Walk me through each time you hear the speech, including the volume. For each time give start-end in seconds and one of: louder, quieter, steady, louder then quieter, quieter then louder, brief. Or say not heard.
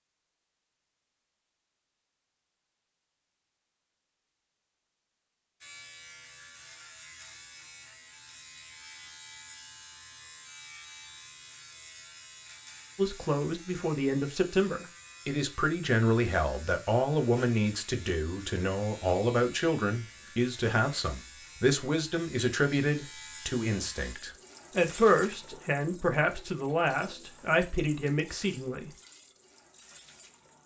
12.9-28.9 steady.